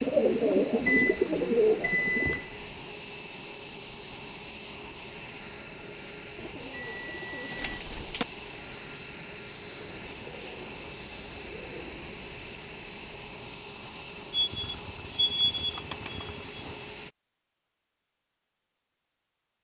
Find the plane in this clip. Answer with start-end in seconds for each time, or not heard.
0.0-17.1.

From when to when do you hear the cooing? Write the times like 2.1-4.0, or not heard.
0.0-2.4, 6.3-8.2, 9.8-12.7, 15.8-16.8.